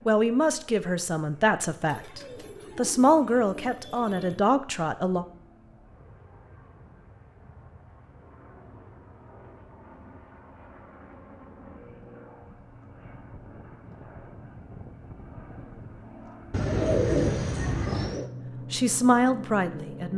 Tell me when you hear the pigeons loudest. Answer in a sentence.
The loudest moment of the pigeons is at 17 seconds.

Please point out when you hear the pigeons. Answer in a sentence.
The pigeons can be heard from 1.9 to 4.4 s and from 16.5 to 18.3 s.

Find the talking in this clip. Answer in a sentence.
You can hear the talking from 0.1 to 5.2 s and from 18.7 to 20.1 s.